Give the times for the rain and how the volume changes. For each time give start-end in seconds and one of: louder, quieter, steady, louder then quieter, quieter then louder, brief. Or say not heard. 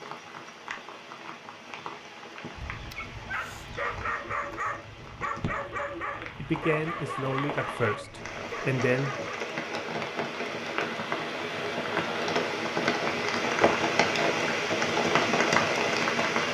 0.0-16.5 louder.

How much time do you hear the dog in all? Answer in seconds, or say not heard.
7 s.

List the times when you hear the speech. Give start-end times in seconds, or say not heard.
6.3-9.2.